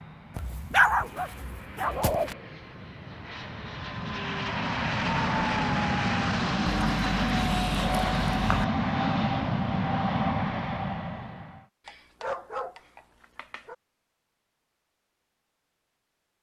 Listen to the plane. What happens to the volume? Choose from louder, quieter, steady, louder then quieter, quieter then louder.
louder.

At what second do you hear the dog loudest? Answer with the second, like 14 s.
1 s.